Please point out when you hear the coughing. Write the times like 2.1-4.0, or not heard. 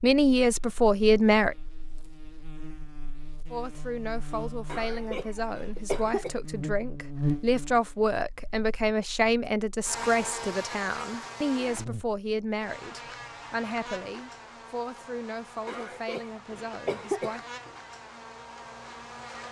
4.7-6.3, 15.7-17.4.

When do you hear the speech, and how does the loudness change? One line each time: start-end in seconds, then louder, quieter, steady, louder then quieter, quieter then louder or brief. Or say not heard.
0.0-1.6 brief
3.5-17.4 louder then quieter.